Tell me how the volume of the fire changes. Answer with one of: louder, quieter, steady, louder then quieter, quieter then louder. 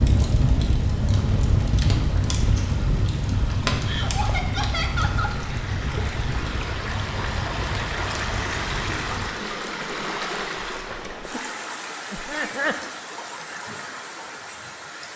quieter.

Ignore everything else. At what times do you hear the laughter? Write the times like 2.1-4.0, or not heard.
3.9-5.3, 12.1-12.8.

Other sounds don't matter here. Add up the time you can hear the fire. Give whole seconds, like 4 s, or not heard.
9 s.